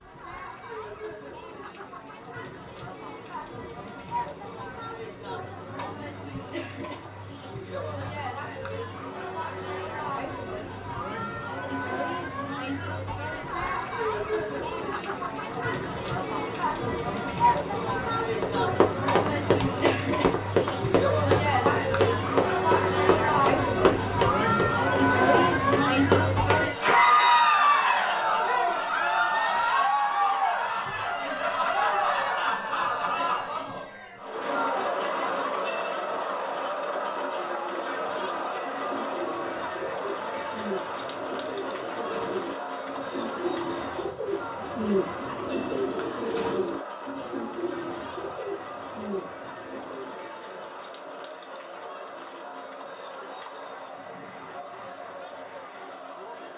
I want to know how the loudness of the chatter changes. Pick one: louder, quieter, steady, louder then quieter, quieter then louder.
louder then quieter.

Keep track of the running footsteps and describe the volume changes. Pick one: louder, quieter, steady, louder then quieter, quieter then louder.
steady.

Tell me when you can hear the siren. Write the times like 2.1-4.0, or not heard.
not heard.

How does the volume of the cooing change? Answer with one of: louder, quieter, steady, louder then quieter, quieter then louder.
louder then quieter.